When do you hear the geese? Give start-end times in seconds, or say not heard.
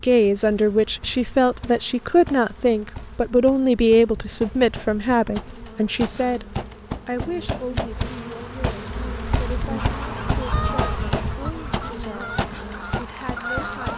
9.8-13.9.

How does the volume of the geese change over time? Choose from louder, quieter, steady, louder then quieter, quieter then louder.
quieter then louder.